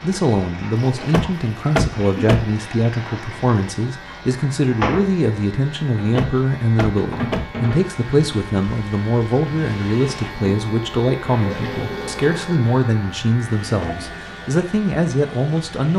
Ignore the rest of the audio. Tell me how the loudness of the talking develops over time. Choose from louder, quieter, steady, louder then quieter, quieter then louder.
steady.